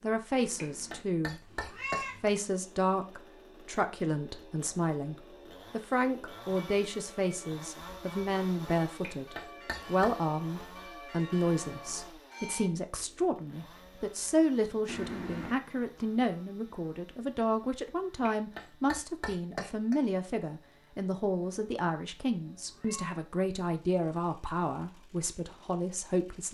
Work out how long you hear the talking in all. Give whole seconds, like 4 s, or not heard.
26 s.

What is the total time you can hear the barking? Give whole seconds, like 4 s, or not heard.
not heard.